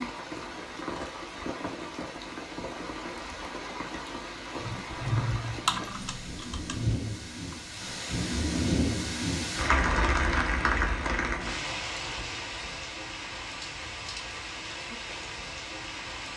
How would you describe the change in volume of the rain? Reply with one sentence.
The volume of the rain goes up, then down.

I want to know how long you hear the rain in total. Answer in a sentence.
You can hear the rain for 16 seconds altogether.